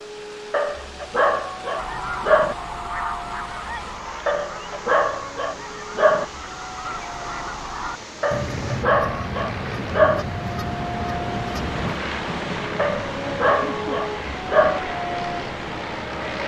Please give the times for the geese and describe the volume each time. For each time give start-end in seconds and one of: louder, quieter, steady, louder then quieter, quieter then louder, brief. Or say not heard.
1.8-12.0 quieter then louder.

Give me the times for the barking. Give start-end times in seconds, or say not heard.
0.5-2.5, 4.2-6.2, 8.2-10.2, 12.8-14.8.